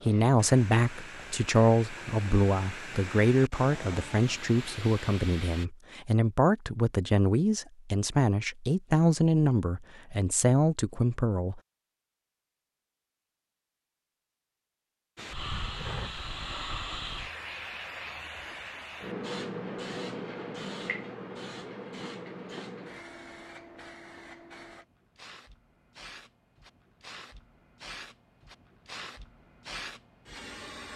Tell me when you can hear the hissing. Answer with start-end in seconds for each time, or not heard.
0.0-5.7, 15.2-30.9.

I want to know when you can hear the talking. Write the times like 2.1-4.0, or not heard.
0.0-11.6.